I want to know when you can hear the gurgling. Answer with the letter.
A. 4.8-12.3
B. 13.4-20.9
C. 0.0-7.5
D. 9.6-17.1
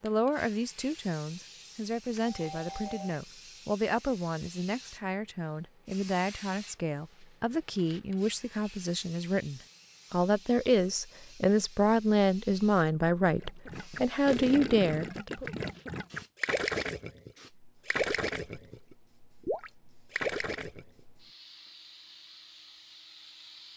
B.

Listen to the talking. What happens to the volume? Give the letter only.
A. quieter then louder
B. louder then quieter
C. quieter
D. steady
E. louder
E.